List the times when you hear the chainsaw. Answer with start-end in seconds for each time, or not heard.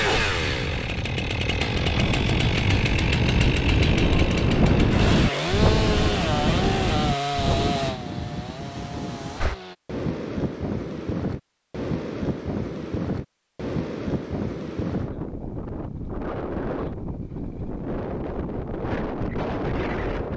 0.0-9.8.